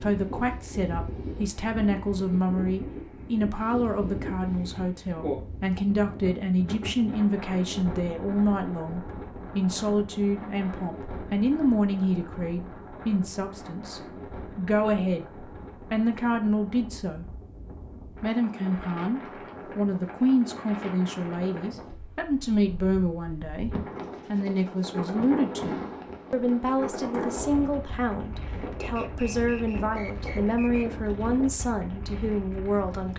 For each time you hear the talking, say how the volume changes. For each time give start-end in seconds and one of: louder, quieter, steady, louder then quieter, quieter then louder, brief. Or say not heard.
0.0-15.3 steady
15.9-17.2 brief
18.2-33.1 steady.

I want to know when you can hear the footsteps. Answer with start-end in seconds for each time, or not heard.
not heard.